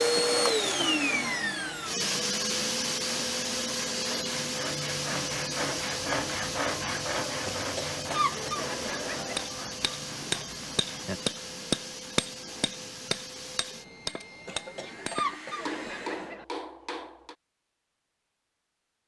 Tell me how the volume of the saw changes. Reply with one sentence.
The loudness of the saw goes up, then down.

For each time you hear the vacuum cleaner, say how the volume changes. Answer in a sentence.
You can hear the vacuum cleaner from 0.0 to 16.4 s, getting quieter.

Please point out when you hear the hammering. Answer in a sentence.
The hammering can be heard from 9.2 to 17.4 s.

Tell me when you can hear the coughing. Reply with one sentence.
The coughing can be heard from 0.1 to 0.7 s, from 7.5 to 9.4 s and from 14.4 to 16.4 s.